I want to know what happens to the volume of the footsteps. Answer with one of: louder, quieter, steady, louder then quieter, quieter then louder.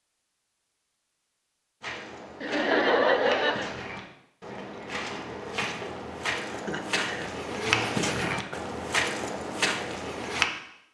louder.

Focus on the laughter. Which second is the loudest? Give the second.
3 s.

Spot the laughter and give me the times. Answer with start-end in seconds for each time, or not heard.
2.4-3.8, 6.5-8.6.